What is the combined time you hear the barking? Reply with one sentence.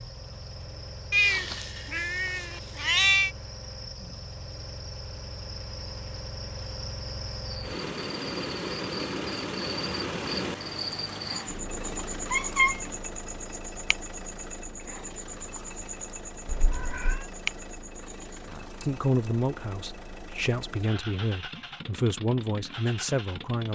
You can't hear the barking here.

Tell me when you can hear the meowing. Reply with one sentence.
The meowing can be heard from 1.1 to 3.3 s, from 11.8 to 12.9 s and from 16.4 to 17.2 s.